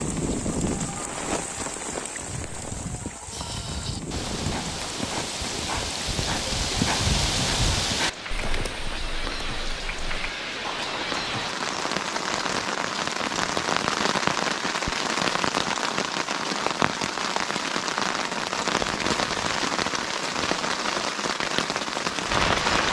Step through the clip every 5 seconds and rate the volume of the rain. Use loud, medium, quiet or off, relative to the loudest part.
medium, medium, loud, loud, loud.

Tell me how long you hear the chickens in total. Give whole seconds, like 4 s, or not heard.
not heard.